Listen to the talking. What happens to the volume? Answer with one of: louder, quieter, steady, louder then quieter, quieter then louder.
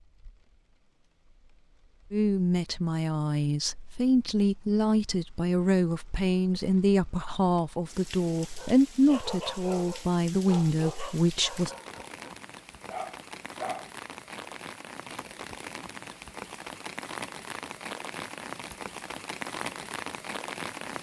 steady.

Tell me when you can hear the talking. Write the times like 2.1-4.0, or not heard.
2.1-11.7.